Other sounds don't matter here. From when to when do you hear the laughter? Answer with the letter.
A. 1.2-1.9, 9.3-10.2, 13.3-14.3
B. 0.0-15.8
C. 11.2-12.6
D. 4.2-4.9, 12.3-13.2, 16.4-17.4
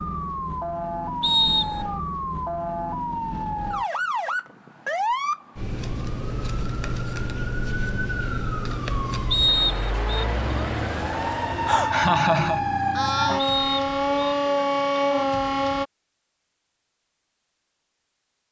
C.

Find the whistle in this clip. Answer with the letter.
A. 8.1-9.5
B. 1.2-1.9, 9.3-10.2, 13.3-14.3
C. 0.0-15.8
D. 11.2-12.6
B.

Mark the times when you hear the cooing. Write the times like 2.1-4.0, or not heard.
not heard.